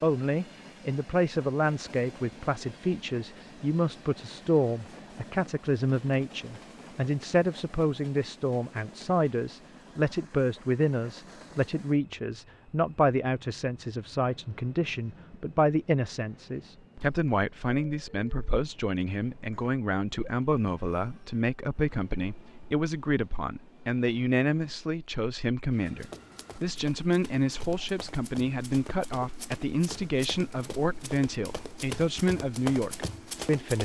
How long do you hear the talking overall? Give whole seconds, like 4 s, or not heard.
34 s.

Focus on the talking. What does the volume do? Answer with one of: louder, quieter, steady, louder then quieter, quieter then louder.
steady.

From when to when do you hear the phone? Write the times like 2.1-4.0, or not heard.
not heard.